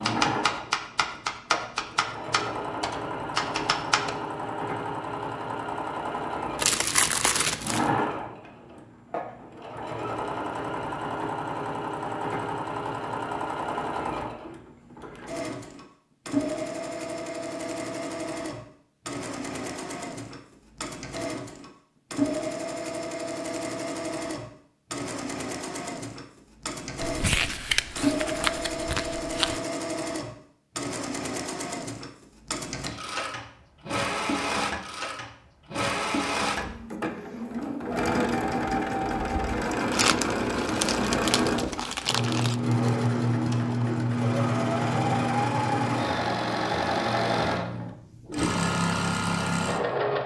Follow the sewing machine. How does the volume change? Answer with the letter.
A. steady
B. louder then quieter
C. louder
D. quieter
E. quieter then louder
C.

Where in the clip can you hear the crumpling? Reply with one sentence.
You can hear the crumpling from 6.5 to 7.9 s, from 27.0 to 29.6 s and from 39.9 to 42.5 s.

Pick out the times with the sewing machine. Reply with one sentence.
You can hear the sewing machine from 0.0 to 50.2 s.